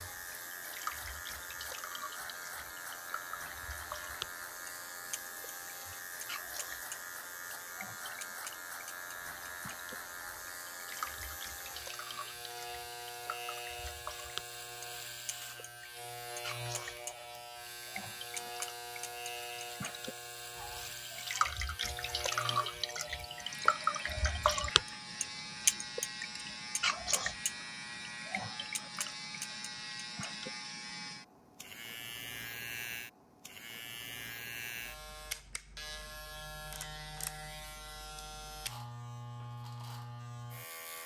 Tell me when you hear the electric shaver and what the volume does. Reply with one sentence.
The electric shaver can be heard from 0.0 to 41.0 s, at a steady volume.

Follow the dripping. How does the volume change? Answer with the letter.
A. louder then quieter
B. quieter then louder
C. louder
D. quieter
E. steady
C.